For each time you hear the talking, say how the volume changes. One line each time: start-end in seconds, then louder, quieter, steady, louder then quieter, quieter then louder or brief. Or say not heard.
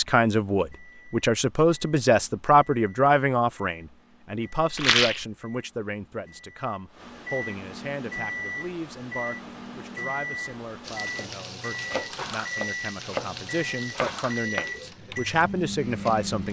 0.0-16.4 quieter then louder.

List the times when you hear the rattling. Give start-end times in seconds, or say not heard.
4.8-5.2.